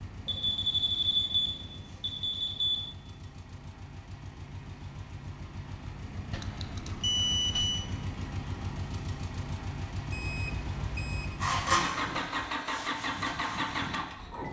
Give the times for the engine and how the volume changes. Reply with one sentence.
The engine can be heard from 0.0 to 14.4 s, getting louder.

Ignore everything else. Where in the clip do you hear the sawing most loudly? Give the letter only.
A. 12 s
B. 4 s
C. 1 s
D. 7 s
A.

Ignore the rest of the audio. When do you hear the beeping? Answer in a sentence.
The beeping can be heard from 0.2 to 3.0 s, from 6.3 to 7.9 s and from 10.1 to 11.4 s.